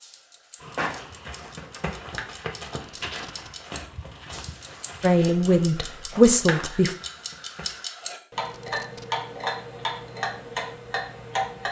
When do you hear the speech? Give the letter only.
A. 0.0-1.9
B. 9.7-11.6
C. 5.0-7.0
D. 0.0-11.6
C.